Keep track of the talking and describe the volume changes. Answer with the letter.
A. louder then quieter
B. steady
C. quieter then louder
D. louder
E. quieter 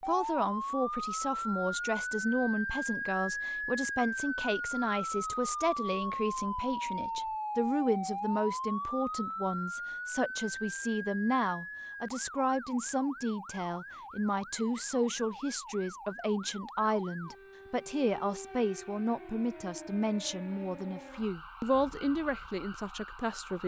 B.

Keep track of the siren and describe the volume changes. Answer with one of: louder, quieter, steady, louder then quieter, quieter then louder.
quieter.